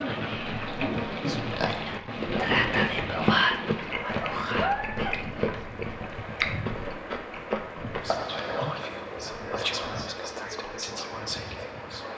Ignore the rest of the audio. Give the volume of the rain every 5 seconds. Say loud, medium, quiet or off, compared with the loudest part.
loud, medium, medium.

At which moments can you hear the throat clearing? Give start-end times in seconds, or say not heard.
not heard.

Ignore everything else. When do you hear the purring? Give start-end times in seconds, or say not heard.
not heard.